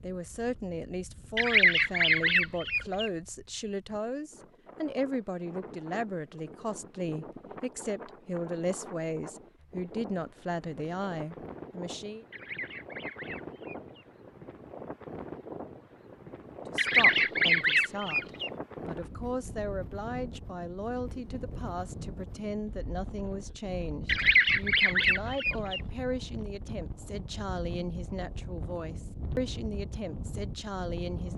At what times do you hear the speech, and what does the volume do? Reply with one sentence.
The speech can be heard from 0.0 to 12.2 s, at a steady volume; and from 16.6 to 31.3 s, at a steady volume.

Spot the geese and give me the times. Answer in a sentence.
You can hear the geese from 1.4 to 3.1 s, from 12.3 to 14.1 s, from 16.8 to 18.5 s and from 24.1 to 25.8 s.